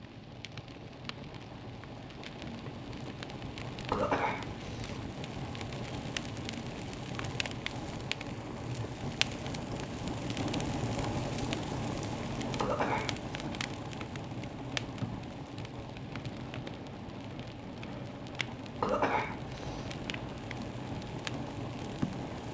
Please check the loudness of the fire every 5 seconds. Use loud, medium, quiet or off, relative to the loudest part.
medium, loud, loud, medium, loud.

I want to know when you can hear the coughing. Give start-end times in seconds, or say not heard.
3.9-5.0, 12.6-13.2, 18.8-19.9.